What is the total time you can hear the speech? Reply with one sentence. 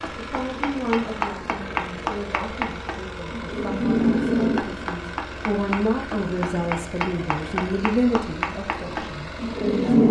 You can hear the speech for 10 seconds altogether.